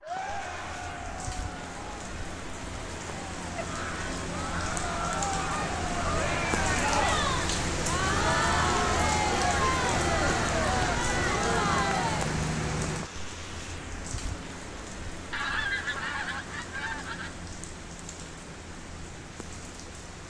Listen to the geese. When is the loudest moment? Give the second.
16 s.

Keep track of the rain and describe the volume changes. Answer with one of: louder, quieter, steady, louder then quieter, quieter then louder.
louder then quieter.